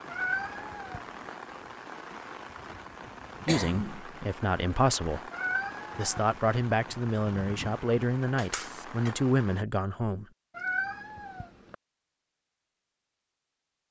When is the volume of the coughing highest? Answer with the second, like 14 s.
4 s.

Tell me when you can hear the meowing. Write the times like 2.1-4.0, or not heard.
0.1-1.3, 5.3-6.4, 10.6-11.8.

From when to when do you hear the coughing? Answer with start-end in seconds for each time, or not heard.
3.5-4.0, 8.3-9.2.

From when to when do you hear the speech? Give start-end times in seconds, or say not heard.
3.5-5.3, 6.0-10.2.